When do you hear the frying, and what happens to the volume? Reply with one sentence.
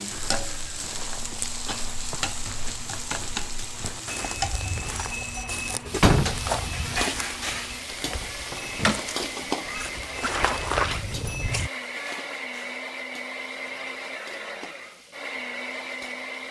The frying can be heard from 0.0 to 16.4 s, getting quieter.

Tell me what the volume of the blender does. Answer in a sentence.
The loudness of the blender goes up.